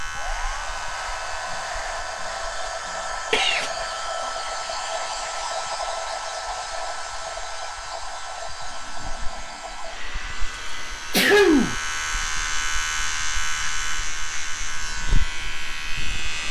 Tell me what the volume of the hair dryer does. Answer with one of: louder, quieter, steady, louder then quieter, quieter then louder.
quieter.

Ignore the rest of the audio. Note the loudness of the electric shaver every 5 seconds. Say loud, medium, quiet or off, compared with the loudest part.
medium, quiet, loud, loud.